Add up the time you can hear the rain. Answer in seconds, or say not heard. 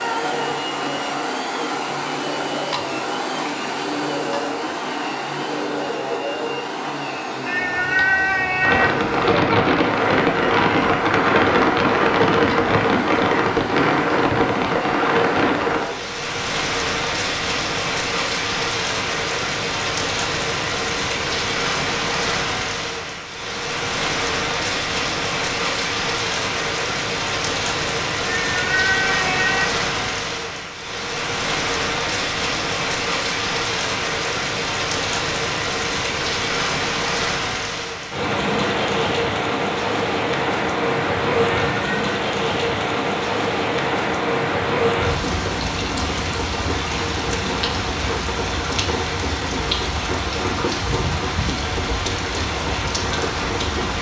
45 s.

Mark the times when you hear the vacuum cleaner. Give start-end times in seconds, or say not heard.
0.0-16.1.